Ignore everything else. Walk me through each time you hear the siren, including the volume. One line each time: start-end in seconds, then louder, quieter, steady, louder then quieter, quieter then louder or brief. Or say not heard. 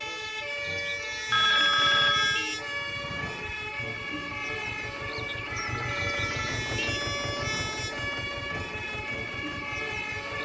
0.0-10.4 steady.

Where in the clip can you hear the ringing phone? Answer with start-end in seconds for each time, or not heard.
1.3-2.5, 5.5-6.5.